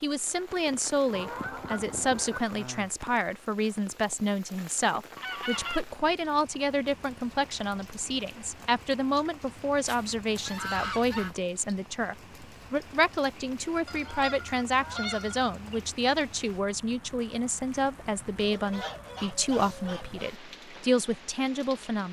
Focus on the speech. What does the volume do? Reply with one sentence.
The volume of the speech stays about the same.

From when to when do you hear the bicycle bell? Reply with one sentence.
The bicycle bell can't be heard in this clip.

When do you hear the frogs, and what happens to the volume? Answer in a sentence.
You can't hear the frogs here.